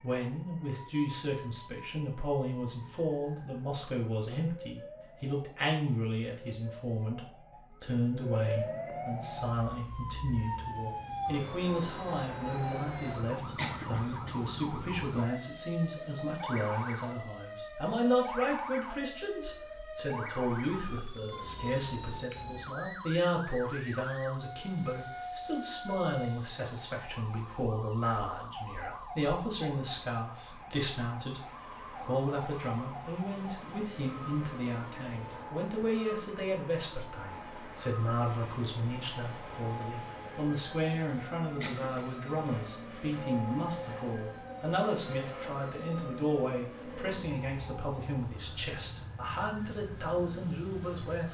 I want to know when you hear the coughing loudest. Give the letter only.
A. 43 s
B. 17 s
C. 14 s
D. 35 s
C.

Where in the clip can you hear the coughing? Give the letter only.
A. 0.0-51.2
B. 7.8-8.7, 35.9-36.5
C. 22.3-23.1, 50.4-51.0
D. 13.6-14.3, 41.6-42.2
D.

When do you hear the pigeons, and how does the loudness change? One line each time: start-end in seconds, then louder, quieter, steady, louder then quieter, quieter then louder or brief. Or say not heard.
not heard.